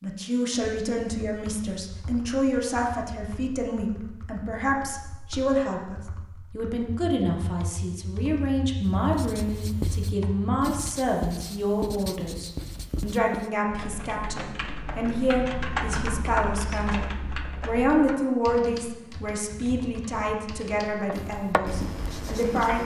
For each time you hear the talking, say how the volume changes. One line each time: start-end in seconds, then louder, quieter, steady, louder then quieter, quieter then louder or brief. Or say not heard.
0.0-22.8 steady.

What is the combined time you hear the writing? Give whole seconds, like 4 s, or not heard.
6 s.